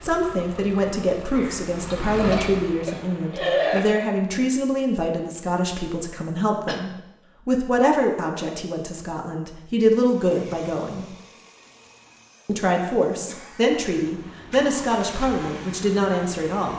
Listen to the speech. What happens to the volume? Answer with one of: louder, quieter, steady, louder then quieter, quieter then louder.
steady.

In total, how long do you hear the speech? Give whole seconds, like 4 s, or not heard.
15 s.